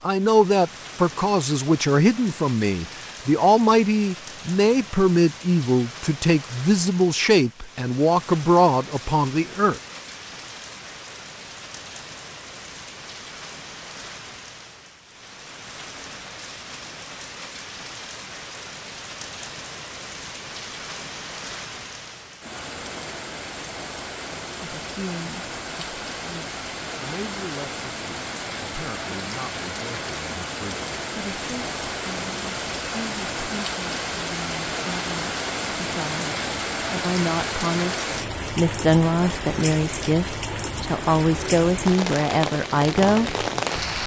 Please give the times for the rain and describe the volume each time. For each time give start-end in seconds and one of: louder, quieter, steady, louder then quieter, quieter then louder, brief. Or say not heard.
0.0-44.0 louder.